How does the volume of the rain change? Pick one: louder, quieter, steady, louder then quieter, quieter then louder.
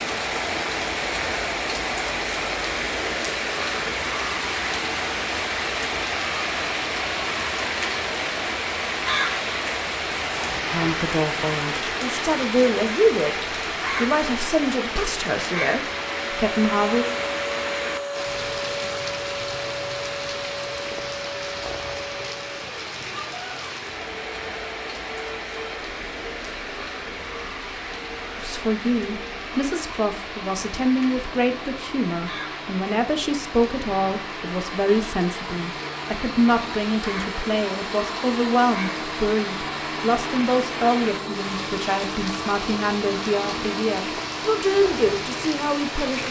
quieter.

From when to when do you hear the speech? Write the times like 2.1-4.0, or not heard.
10.7-13.3, 13.9-17.1, 28.4-46.2.